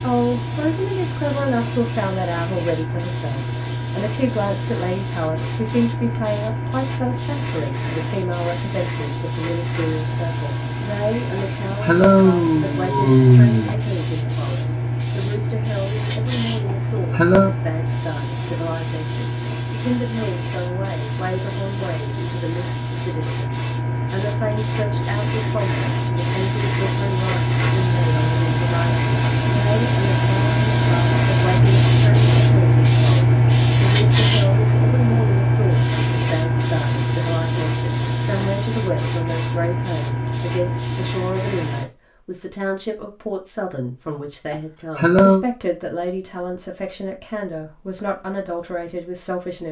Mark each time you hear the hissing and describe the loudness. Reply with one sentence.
The hissing can be heard from 0.0 to 41.9 s, getting louder.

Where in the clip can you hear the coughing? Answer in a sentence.
The coughing can be heard from 11.3 to 13.8 s, from 16.6 to 17.6 s and from 44.5 to 45.5 s.